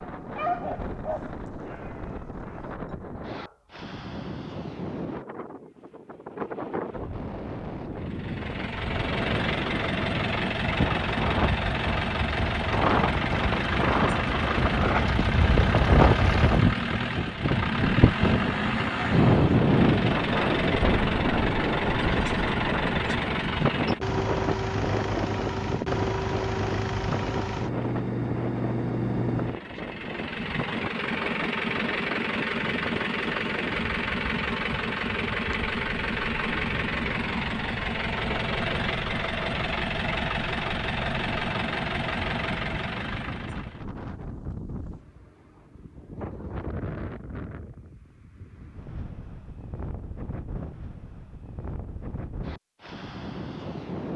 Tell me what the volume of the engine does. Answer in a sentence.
The loudness of the engine stays about the same.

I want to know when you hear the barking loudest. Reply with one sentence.
The loudest moment of the barking is at 1 second.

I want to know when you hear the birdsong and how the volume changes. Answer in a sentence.
The birdsong can't be heard in this clip.